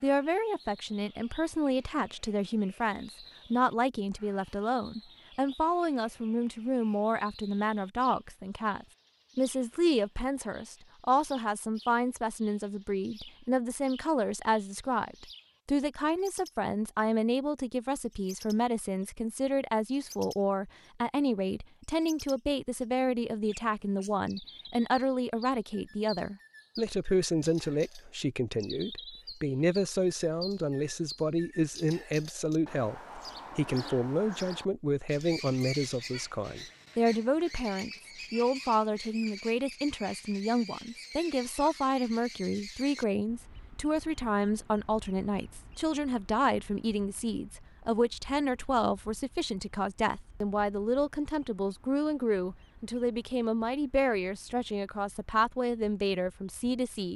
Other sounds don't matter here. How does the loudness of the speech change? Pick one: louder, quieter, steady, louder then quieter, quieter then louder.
steady.